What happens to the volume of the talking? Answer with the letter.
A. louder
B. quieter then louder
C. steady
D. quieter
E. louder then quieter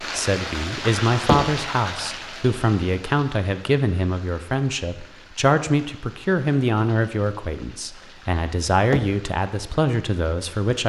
C.